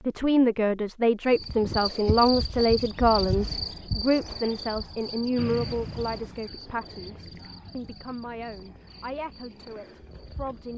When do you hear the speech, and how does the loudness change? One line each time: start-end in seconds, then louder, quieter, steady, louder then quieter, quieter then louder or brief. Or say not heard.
0.1-10.7 quieter.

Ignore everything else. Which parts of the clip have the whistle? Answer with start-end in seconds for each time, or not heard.
5.3-6.4.